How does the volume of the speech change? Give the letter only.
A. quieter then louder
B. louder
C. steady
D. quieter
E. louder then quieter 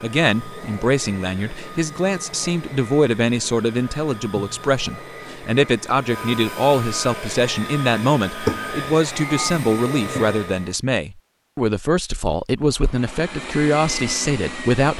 C.